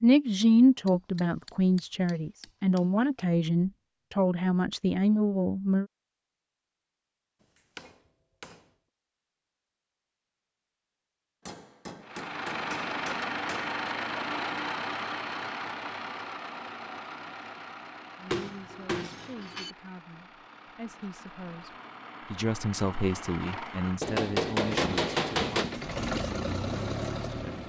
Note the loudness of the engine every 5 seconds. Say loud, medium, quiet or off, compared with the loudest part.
off, off, loud, medium, medium, loud.